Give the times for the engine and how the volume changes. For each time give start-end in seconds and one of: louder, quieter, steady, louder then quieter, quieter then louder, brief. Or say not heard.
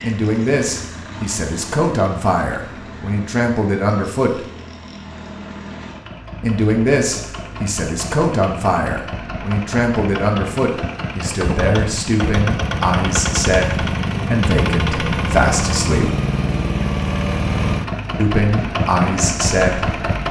0.0-20.2 louder.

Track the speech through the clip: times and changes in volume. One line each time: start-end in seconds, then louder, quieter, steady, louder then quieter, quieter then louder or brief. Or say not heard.
0.0-4.4 quieter then louder
6.4-16.1 steady
18.1-19.9 brief.